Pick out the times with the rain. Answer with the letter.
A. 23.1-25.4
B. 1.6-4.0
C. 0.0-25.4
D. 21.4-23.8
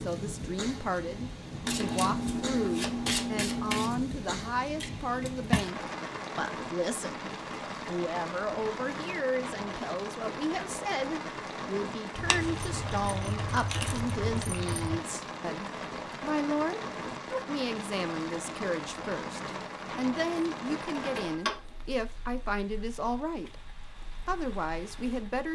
C.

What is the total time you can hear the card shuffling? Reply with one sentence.
The card shuffling can be heard for 2 seconds in total.